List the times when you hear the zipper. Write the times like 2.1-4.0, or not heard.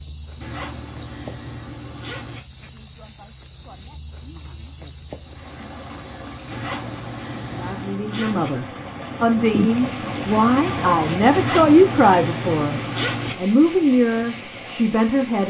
0.4-2.4, 6.5-8.5, 11.3-13.3.